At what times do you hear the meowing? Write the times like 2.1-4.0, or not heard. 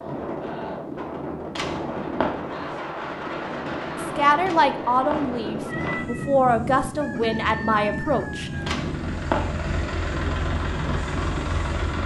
1.6-2.3, 4.5-6.3, 8.7-9.4.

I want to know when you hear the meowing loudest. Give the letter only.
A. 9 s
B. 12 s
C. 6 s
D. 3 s
A.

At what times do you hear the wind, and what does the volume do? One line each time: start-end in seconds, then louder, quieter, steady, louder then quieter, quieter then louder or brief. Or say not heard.
0.0-12.0 steady.